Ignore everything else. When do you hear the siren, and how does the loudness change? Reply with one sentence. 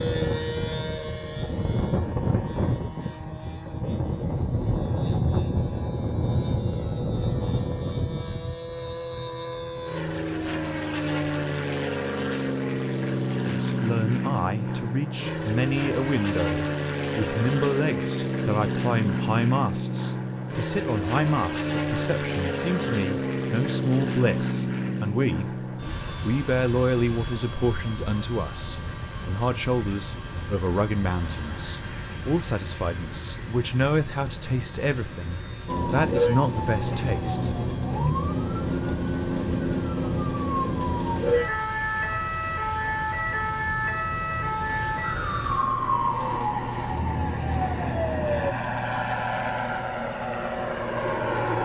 The siren can be heard from 35.6 to 48.5 s, at a steady volume.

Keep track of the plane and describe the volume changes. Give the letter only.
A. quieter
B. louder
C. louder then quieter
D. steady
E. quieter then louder
E.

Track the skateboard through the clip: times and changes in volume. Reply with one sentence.
The skateboard can't be heard in this clip.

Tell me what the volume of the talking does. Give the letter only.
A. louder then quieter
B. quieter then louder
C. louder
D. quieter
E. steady
E.